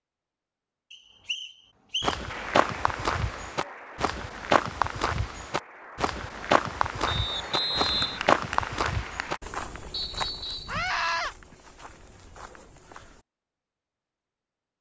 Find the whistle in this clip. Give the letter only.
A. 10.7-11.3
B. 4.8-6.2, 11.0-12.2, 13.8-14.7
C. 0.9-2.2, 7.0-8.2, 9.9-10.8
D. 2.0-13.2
C.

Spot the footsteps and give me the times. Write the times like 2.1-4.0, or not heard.
2.0-13.2.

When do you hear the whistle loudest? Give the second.
8 s.